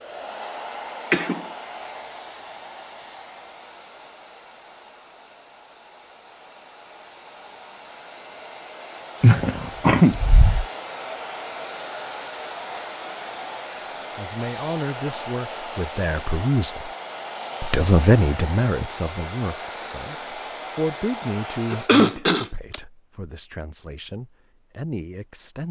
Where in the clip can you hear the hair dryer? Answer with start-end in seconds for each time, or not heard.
0.0-21.9.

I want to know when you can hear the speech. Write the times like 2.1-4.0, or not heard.
14.2-16.9, 17.6-25.6.